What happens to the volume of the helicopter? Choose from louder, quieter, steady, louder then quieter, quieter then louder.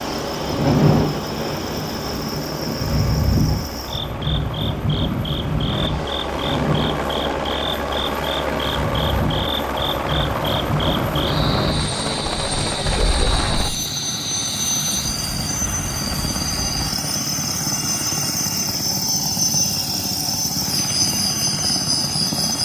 louder.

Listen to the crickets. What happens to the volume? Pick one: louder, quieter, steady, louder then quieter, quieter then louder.
louder.